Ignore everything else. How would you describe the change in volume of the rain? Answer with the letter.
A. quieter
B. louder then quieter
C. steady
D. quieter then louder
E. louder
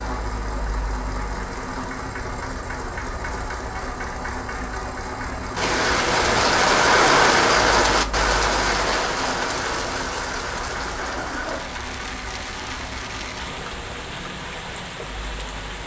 A.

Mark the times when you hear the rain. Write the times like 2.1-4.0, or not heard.
5.5-15.8.